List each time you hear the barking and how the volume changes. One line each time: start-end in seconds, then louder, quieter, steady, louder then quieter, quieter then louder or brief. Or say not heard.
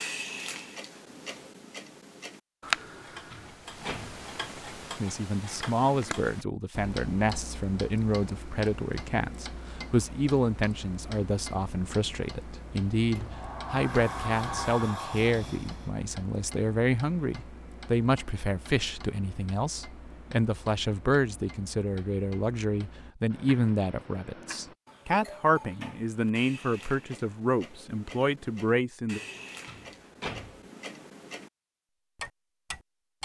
not heard.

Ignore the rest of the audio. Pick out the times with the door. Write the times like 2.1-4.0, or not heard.
2.8-4.2, 13.2-15.9, 29.1-30.6.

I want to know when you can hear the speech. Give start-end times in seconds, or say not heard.
5.0-29.2.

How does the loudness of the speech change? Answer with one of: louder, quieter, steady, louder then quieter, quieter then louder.
steady.